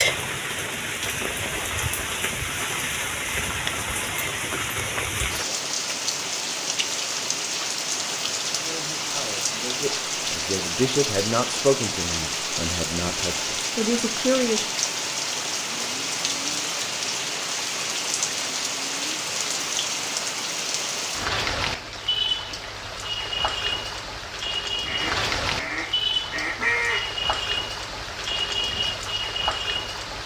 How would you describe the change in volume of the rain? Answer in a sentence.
The loudness of the rain stays about the same.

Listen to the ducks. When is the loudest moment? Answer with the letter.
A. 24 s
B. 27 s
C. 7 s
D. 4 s
B.